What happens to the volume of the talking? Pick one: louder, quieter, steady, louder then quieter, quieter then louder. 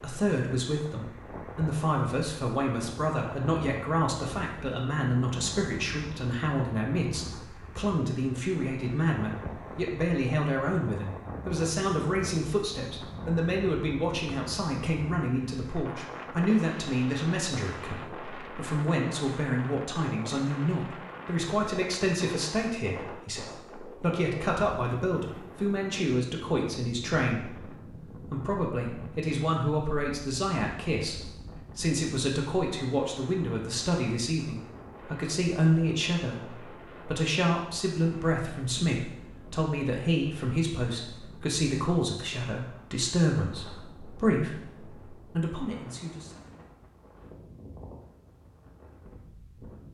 steady.